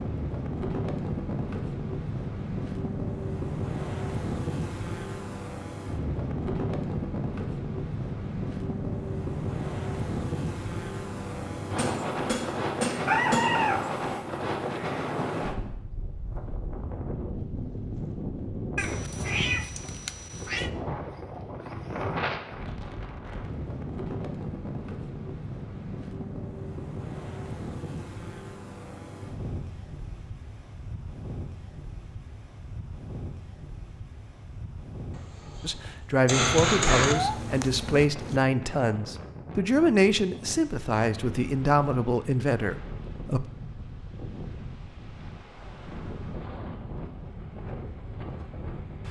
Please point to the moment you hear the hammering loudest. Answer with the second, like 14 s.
37 s.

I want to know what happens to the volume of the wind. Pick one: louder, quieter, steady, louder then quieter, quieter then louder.
quieter.